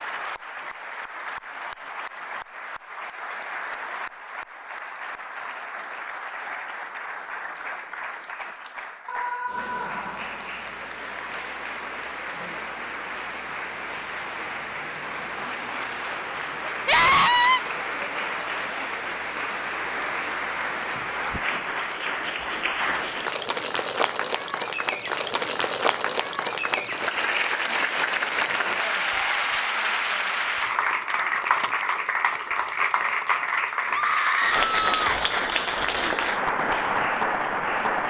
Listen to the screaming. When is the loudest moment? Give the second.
17 s.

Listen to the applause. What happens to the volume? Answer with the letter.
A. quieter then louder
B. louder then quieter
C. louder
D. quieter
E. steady
C.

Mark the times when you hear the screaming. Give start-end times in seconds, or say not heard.
9.1-10.4, 16.9-17.6, 33.9-35.0.